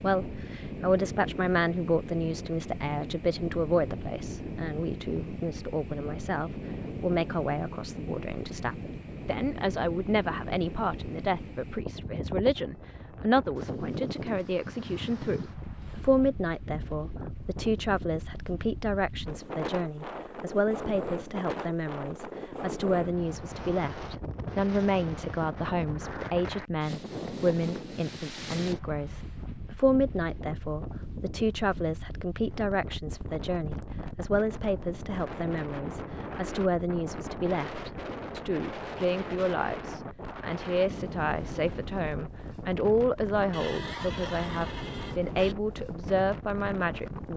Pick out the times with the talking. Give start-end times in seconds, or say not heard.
0.0-47.3.